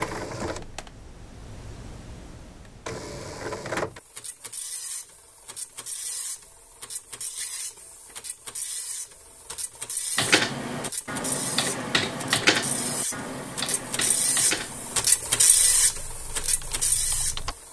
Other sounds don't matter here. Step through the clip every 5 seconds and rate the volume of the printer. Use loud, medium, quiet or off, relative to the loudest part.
medium, quiet, medium, loud.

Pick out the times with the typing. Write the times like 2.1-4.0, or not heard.
10.2-17.6.